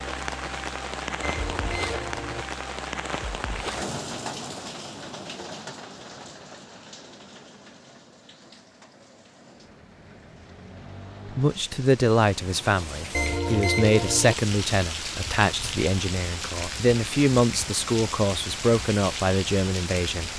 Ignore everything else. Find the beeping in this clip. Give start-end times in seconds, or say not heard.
1.2-2.5, 13.1-14.3.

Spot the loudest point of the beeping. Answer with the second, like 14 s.
14 s.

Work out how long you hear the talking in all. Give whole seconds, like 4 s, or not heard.
9 s.